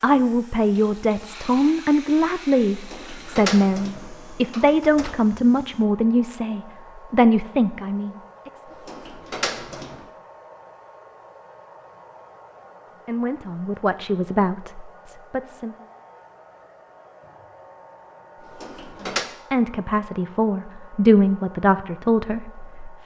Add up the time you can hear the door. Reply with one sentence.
The door can be heard for 5 seconds in total.